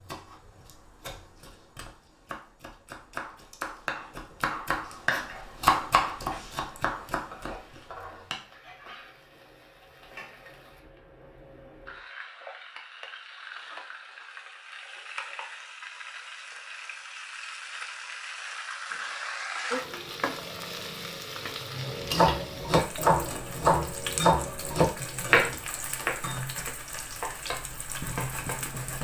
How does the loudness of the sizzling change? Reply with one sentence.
The volume of the sizzling goes up.